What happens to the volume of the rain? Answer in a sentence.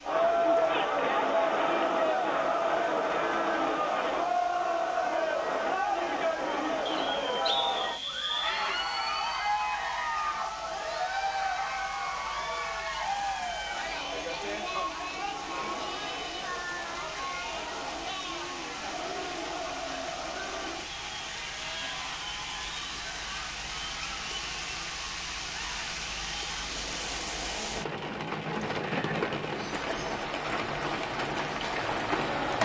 The volume of the rain goes up.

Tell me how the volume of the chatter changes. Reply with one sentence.
The loudness of the chatter goes down.